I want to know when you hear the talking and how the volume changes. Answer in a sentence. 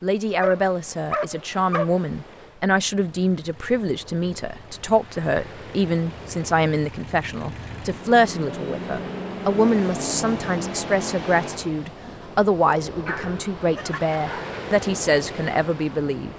The talking can be heard from 0.0 to 16.3 s, at a steady volume.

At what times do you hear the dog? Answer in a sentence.
The dog can be heard from 0.4 to 2.0 s and from 13.1 to 14.6 s.